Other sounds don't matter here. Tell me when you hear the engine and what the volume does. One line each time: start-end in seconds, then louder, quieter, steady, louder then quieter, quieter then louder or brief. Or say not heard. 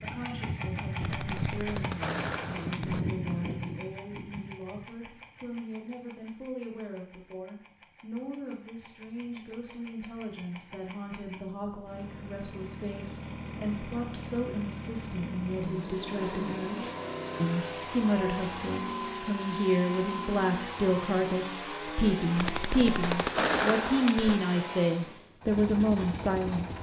0.0-26.7 quieter then louder.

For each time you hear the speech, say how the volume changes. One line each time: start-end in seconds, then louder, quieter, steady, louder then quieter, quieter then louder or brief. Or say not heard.
0.0-26.7 louder.